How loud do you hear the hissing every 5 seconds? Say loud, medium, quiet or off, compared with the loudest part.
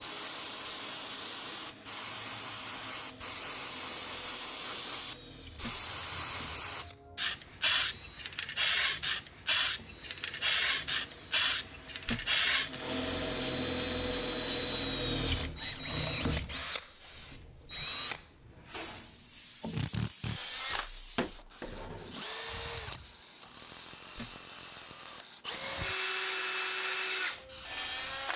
medium, loud, loud, quiet, quiet, quiet.